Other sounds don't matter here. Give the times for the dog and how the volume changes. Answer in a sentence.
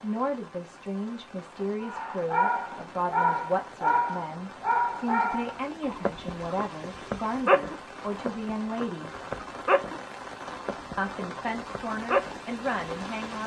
You can hear the dog from 1.8 to 12.4 s, getting quieter.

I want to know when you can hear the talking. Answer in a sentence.
You can hear the talking from 0.0 to 9.1 s and from 10.9 to 13.4 s.